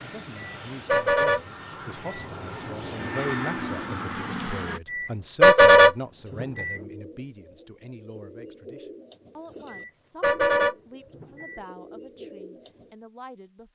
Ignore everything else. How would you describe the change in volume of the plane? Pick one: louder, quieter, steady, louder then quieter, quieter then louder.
louder.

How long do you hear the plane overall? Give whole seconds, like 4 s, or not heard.
5 s.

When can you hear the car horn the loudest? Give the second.
6 s.